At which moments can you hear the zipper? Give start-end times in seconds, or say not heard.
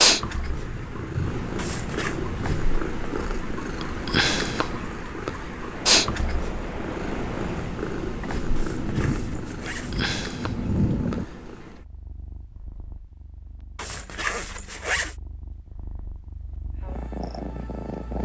1.6-2.2, 8.6-10.0, 13.8-15.2.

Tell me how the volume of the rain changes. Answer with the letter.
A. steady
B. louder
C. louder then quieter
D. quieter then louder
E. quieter
D.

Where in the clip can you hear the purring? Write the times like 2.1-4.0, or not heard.
0.0-18.2.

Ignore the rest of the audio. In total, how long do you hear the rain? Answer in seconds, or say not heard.
11 s.